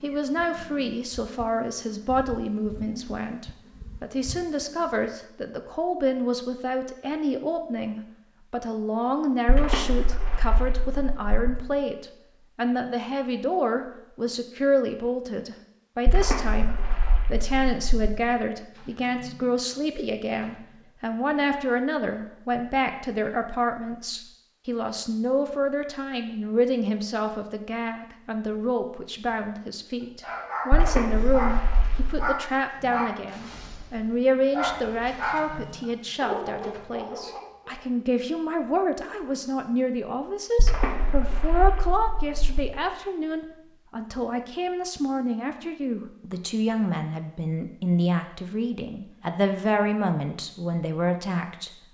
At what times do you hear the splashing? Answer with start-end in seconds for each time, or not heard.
9.4-11.5, 16.1-18.1, 30.7-32.3, 40.5-42.6.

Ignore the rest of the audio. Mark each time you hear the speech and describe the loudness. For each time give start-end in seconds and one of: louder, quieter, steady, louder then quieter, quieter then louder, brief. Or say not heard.
0.0-51.9 steady.